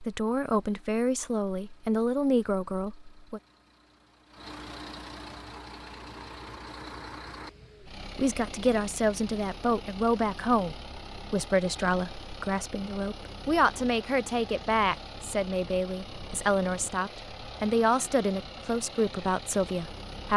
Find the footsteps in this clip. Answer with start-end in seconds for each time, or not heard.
not heard.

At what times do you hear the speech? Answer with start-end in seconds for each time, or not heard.
0.0-3.4, 8.2-20.3.